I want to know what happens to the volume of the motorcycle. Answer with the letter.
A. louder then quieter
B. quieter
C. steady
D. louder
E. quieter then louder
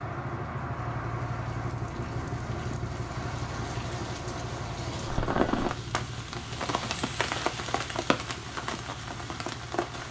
B.